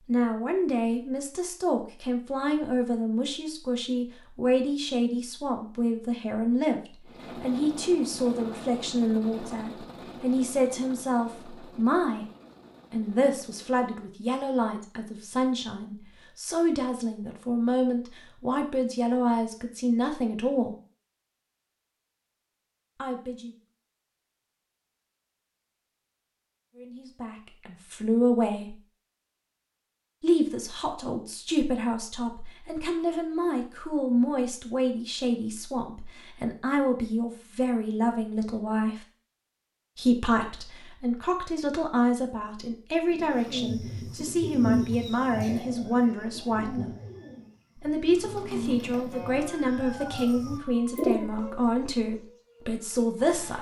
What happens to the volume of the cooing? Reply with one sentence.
The volume of the cooing goes down, then up.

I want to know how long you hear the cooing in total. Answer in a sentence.
You can hear the cooing for 8 seconds altogether.